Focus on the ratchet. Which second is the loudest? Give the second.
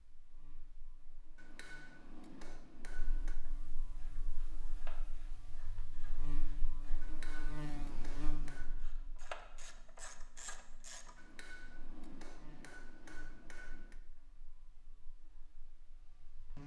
9 s.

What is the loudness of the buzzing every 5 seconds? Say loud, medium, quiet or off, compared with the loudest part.
quiet, loud, quiet, medium.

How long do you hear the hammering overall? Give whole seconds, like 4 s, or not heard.
7 s.